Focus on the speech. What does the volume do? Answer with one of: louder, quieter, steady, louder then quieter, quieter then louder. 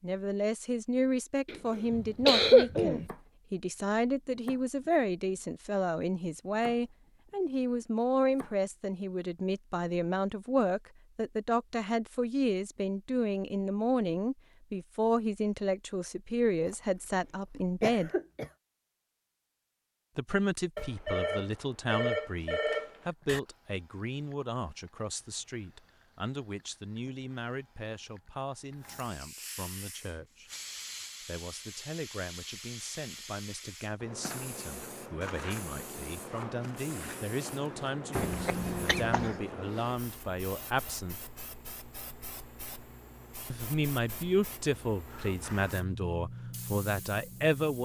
quieter then louder.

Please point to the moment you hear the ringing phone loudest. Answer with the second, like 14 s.
22 s.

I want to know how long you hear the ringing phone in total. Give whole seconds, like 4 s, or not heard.
3 s.